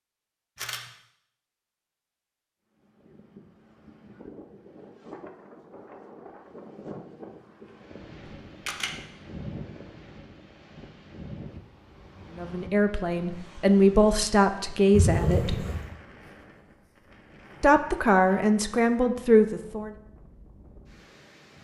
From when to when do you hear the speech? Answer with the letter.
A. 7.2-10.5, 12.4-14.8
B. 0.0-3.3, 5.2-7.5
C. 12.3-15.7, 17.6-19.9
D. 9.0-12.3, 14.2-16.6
C.